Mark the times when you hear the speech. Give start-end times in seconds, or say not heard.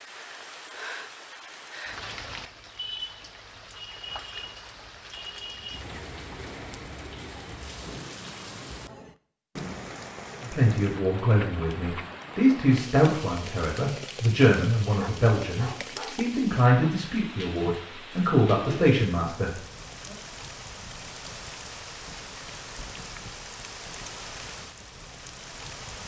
10.4-20.1.